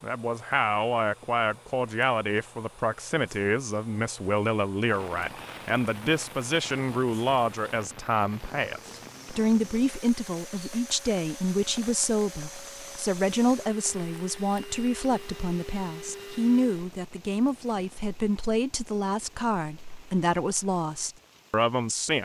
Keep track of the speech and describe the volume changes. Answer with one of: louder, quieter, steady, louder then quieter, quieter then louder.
steady.